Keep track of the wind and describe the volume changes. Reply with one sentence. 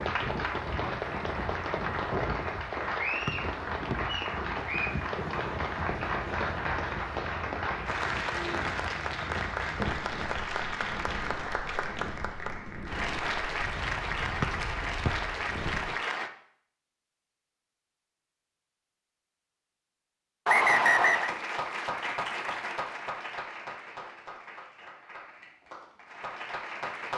The loudness of the wind goes down.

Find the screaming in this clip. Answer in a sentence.
You can't hear the screaming here.